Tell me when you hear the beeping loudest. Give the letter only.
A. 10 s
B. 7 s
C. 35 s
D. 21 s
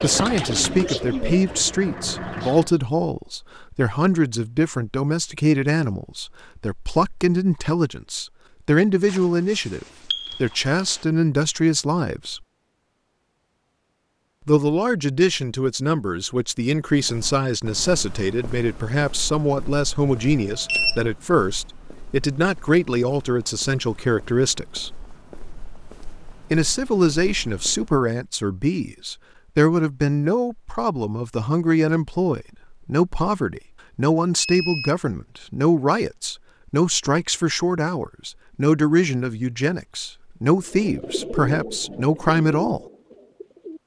D.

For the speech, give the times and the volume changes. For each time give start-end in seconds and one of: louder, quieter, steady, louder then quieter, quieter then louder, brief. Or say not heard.
0.0-12.4 steady
14.4-24.9 steady
26.5-42.8 steady.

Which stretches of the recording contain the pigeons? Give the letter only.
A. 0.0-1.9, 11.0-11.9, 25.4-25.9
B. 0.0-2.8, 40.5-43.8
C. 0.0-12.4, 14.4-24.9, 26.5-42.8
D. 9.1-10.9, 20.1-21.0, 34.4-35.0
B.